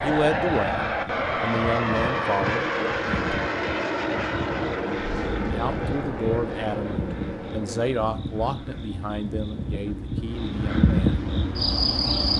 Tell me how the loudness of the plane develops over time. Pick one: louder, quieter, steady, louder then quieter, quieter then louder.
quieter.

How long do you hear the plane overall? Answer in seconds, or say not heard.
12 s.